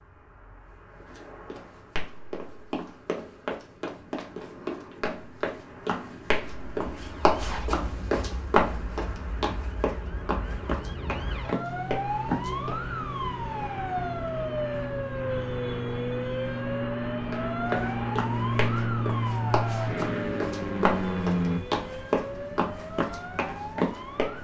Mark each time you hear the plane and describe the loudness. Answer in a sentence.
You can hear the plane from 0.0 to 24.4 s, getting louder.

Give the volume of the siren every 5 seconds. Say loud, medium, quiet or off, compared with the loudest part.
off, quiet, loud, loud, medium.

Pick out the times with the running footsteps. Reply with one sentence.
You can hear the running footsteps from 1.0 to 12.8 s and from 17.3 to 24.4 s.